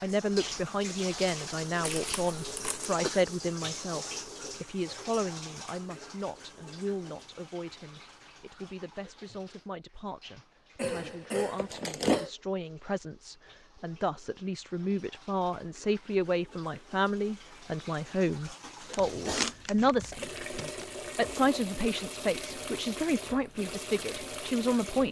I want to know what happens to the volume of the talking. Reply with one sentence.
The loudness of the talking goes down, then up.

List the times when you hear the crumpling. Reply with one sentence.
You can hear the crumpling from 1.8 to 3.0 s, from 11.6 to 12.2 s and from 18.9 to 20.9 s.